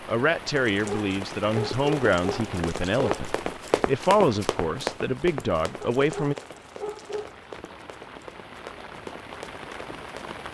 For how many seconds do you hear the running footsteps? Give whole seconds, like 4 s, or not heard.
9 s.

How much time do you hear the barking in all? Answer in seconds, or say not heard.
4 s.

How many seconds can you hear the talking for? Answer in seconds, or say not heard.
6 s.